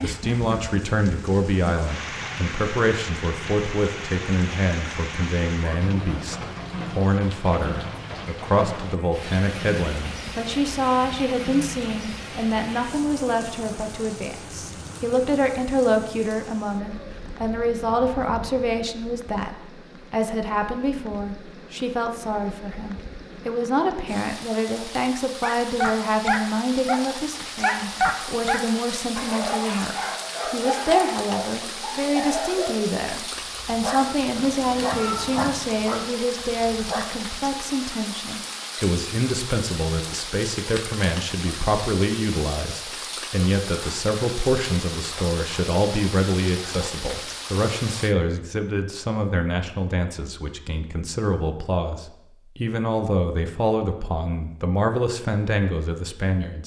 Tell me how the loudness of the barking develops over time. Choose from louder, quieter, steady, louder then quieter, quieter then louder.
quieter.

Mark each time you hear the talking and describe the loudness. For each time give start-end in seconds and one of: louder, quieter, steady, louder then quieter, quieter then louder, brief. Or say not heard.
0.0-56.6 steady.